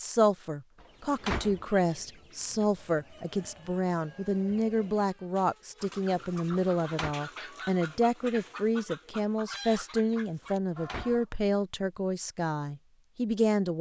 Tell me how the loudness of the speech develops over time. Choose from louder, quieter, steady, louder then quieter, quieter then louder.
steady.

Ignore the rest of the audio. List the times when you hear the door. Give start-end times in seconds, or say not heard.
0.8-1.6, 6.5-7.2, 10.4-11.2.